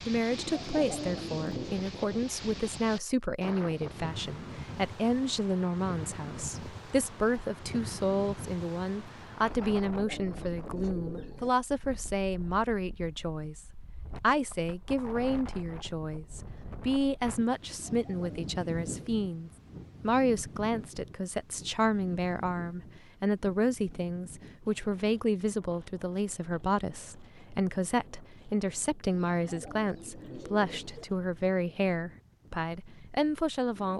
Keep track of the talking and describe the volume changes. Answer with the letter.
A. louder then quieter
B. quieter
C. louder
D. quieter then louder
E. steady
E.